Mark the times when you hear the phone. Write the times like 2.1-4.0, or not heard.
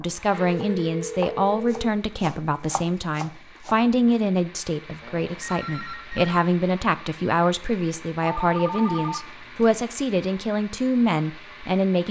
0.4-1.9, 5.0-6.4, 8.2-9.8.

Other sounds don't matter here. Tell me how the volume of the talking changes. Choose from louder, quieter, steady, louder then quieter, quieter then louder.
steady.